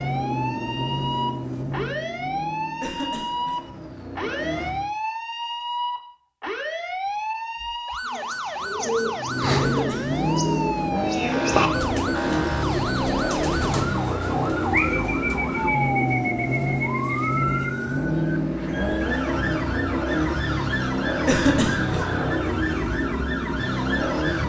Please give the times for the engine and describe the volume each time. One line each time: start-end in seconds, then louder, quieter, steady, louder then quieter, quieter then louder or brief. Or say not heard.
0.0-4.9 quieter then louder
9.2-24.4 steady.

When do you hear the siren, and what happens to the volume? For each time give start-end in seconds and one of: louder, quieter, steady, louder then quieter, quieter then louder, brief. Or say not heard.
0.0-24.4 steady.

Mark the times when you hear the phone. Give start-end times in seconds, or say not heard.
not heard.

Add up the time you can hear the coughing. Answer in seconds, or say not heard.
2 s.